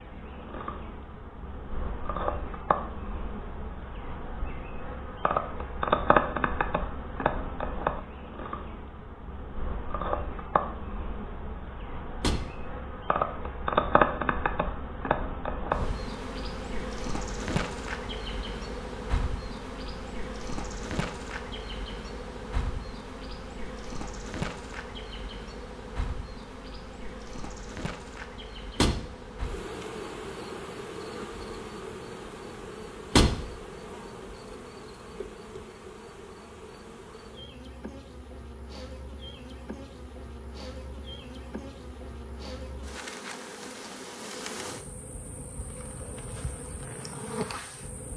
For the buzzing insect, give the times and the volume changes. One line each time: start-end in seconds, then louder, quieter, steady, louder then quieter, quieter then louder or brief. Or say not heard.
0.0-48.1 quieter.